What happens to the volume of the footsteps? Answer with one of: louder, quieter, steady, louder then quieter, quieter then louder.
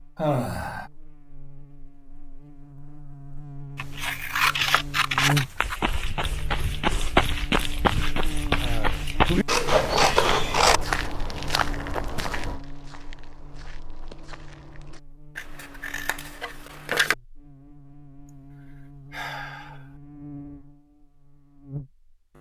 quieter.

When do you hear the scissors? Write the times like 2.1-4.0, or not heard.
3.8-5.8, 9.4-10.8, 15.3-17.1.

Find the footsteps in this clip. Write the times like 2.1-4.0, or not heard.
5.6-15.0.